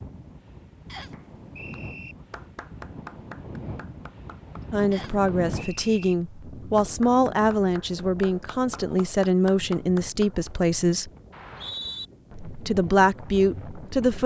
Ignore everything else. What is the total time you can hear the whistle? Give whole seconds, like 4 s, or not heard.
3 s.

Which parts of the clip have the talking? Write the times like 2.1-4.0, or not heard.
4.7-11.1, 12.4-14.2.